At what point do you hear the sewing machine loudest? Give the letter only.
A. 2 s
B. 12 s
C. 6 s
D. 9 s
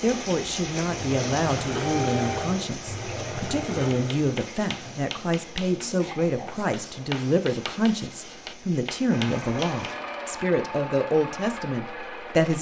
A.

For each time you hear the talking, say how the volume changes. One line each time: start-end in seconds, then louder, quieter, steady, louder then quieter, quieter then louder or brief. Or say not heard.
0.0-12.5 steady.